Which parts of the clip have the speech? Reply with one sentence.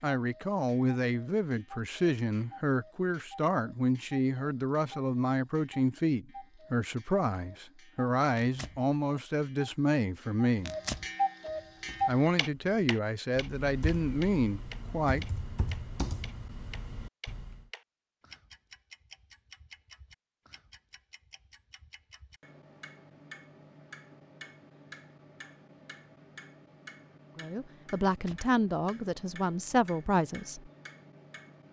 You can hear the speech from 0.0 to 10.8 s, from 12.1 to 15.2 s and from 27.4 to 30.7 s.